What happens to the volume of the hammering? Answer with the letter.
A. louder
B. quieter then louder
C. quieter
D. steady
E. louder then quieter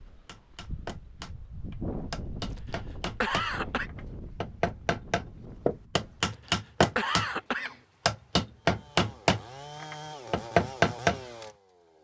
A.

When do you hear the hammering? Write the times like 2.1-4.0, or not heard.
0.1-11.2.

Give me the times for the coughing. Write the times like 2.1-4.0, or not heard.
2.5-3.9, 6.2-7.8.